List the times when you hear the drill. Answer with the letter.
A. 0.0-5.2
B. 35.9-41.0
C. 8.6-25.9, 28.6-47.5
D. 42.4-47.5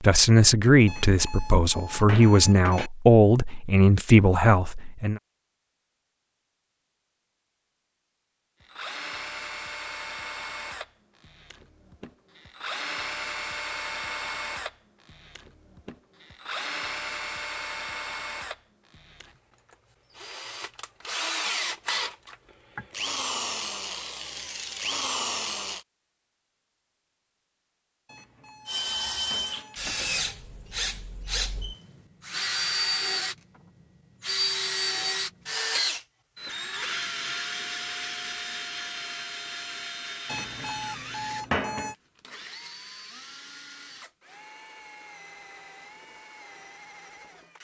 C.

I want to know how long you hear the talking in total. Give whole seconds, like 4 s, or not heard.
5 s.